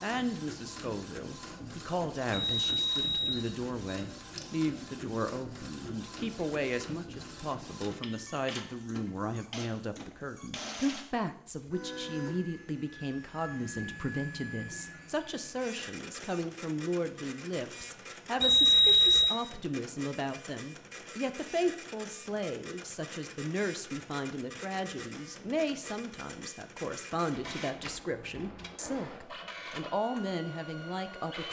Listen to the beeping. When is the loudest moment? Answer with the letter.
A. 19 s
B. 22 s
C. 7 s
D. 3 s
A.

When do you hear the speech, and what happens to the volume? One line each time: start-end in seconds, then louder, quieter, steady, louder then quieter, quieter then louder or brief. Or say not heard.
0.0-31.4 steady.